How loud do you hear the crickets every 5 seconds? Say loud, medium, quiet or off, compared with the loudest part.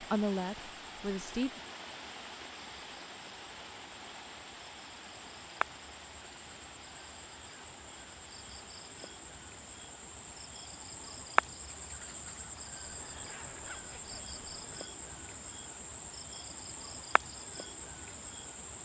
quiet, medium, loud, loud.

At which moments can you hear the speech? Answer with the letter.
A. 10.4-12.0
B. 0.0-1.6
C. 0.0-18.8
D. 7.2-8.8
B.